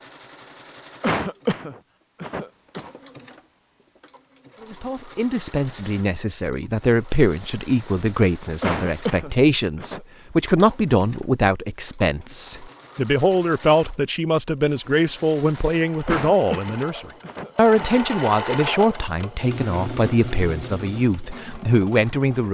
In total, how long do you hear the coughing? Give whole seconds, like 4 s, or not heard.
5 s.